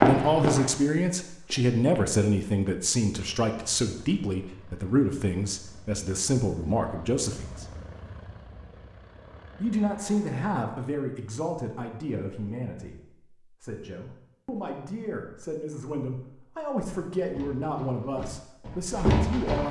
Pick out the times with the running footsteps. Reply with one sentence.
You can hear the running footsteps from 0.0 to 2.0 s and from 17.1 to 19.6 s.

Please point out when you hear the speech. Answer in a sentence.
You can hear the speech from 0.0 to 7.7 s and from 9.6 to 19.6 s.